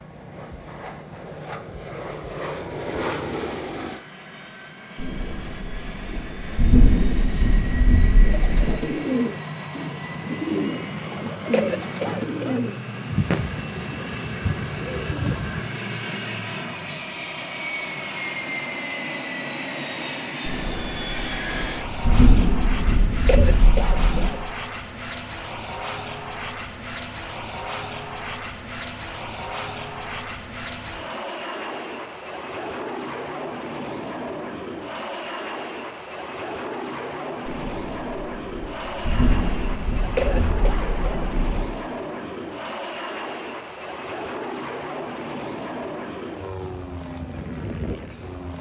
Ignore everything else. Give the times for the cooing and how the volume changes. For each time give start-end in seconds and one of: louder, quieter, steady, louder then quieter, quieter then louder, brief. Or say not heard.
8.2-15.6 quieter.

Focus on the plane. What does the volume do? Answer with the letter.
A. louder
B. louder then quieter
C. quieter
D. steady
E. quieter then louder
D.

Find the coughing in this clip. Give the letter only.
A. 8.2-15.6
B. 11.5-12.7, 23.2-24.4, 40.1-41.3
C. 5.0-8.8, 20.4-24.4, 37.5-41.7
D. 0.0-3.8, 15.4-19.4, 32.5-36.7
B.